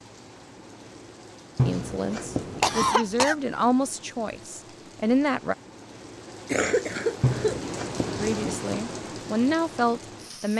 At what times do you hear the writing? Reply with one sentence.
The writing can be heard from 1.6 to 3.0 s and from 7.2 to 8.4 s.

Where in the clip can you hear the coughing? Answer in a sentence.
You can hear the coughing from 2.6 to 3.4 s and from 6.5 to 7.6 s.